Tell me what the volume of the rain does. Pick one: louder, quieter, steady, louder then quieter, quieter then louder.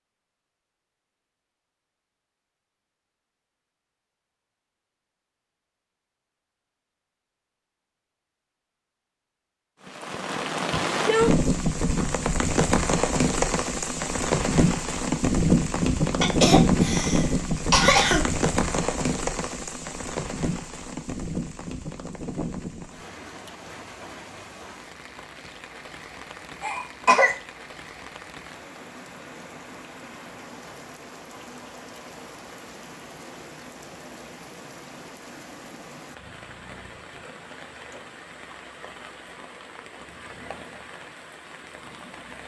quieter.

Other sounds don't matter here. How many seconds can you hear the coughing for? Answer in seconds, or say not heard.
3 s.